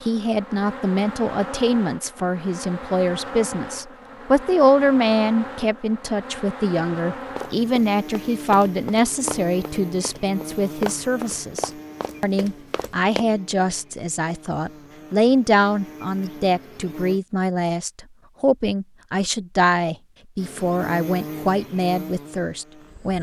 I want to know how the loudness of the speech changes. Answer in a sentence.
The loudness of the speech stays about the same.